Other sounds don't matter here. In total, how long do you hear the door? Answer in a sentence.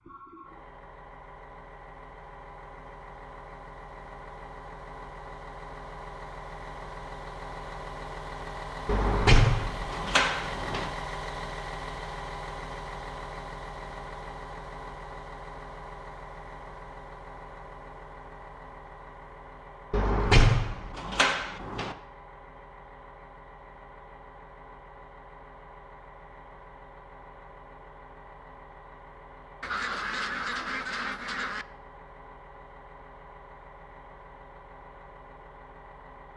You can hear the door for 4 seconds altogether.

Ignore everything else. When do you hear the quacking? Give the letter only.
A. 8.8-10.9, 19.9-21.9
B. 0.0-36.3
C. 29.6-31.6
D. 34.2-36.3
C.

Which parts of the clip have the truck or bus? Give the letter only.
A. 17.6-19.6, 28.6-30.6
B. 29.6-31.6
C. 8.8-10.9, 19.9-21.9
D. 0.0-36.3
D.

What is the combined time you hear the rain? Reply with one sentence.
You can't hear the rain here.